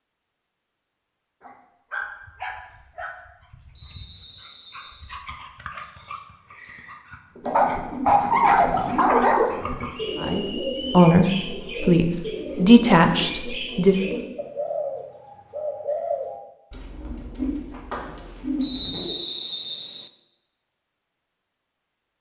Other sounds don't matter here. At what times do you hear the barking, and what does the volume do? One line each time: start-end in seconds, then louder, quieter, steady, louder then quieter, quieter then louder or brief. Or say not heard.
1.4-9.9 quieter then louder.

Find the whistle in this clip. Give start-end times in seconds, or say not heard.
3.8-5.2, 9.9-11.2, 18.6-20.1.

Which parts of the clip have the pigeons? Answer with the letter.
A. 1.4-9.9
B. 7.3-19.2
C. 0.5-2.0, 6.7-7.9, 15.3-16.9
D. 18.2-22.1
B.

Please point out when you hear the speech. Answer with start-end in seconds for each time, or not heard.
10.2-14.2.